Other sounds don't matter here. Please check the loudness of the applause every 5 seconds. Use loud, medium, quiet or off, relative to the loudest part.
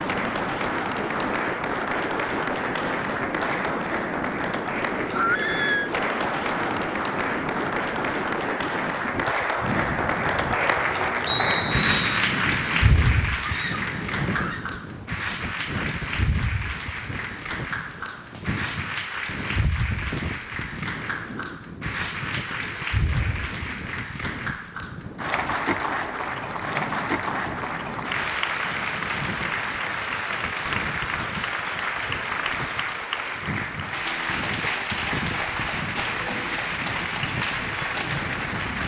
loud, loud, loud, medium, medium, loud, loud, loud.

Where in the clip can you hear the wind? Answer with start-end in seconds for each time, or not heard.
0.0-38.8.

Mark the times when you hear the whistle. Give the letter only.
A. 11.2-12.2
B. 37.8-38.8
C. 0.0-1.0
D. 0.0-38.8
A.